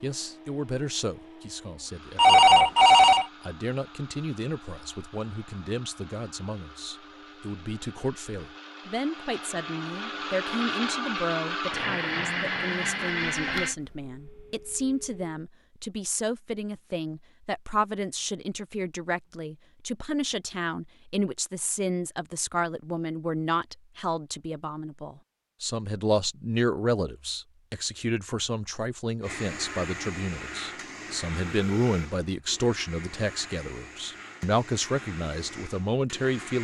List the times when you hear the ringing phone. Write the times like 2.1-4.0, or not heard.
2.1-3.2, 13.2-15.2, 31.6-32.1.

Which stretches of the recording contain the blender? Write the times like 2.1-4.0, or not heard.
0.0-13.8, 29.2-36.5.